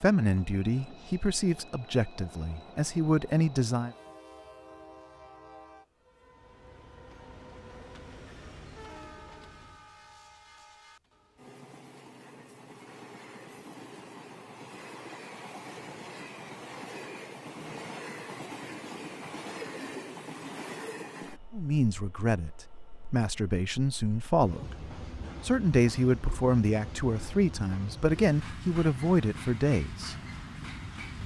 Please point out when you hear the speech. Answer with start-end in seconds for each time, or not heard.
0.0-4.0, 21.5-30.1.